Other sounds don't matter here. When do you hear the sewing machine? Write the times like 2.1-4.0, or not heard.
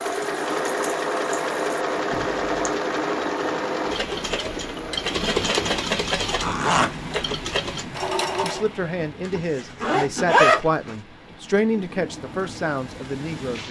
0.0-8.7.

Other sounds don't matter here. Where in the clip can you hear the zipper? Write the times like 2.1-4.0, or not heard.
2.1-2.7, 6.4-6.9, 9.2-10.9.